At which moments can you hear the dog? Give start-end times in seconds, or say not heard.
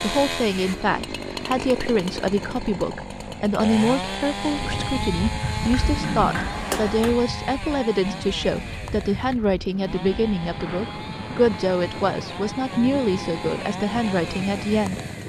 not heard.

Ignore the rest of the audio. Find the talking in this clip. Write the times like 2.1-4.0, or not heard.
0.0-15.0.